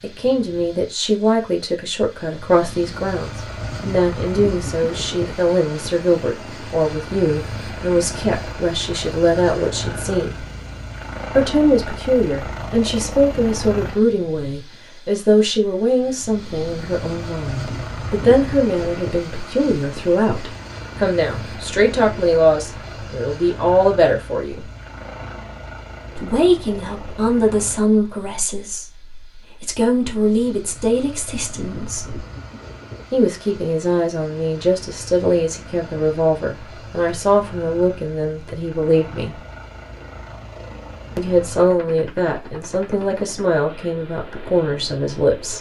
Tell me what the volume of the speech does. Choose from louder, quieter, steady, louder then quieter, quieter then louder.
steady.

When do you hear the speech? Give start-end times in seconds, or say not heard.
0.0-10.4, 11.3-24.6, 26.1-32.2, 33.1-39.4, 41.1-45.5.